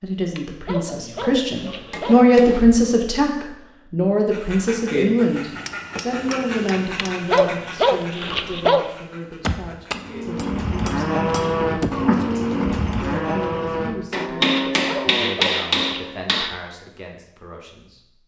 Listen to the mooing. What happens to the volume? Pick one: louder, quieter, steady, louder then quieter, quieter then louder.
quieter.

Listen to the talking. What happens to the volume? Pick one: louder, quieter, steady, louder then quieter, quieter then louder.
quieter.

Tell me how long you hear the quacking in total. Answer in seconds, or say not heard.
6 s.